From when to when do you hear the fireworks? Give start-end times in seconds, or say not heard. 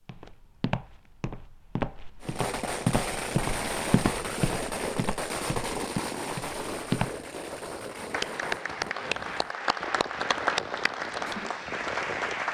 2.2-12.4.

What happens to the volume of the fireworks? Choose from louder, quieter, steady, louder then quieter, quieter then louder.
quieter.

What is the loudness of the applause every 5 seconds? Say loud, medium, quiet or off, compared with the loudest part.
off, loud, loud.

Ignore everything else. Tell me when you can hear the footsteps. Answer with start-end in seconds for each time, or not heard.
0.1-7.2.